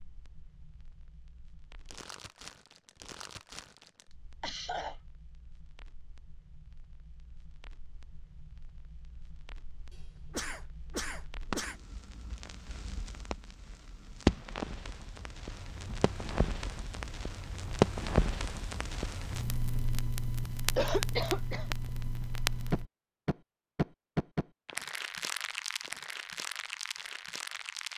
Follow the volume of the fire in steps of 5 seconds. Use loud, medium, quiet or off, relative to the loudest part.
quiet, quiet, loud, loud, loud, medium.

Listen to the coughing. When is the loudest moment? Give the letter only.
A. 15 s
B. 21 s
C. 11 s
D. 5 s
B.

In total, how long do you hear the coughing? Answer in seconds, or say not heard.
3 s.